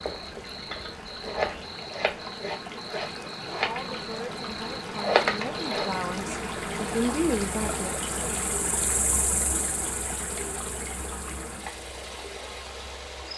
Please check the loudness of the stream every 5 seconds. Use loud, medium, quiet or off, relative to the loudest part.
medium, loud, medium.